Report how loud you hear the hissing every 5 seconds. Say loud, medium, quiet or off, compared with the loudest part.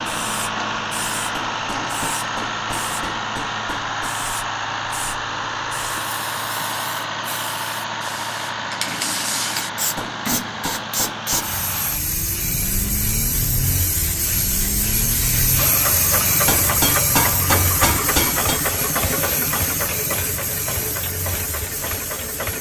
medium, medium, loud, loud, medium.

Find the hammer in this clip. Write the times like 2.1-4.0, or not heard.
1.3-4.2, 9.9-11.6, 16.4-18.6.